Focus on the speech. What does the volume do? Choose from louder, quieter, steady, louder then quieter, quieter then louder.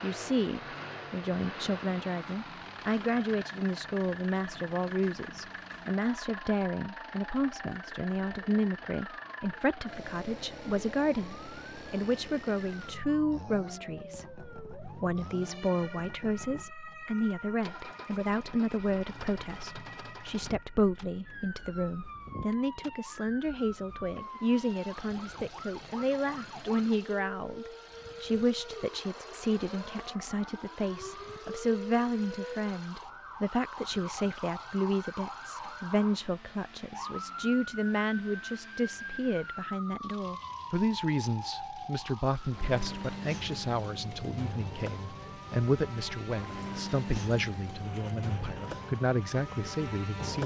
steady.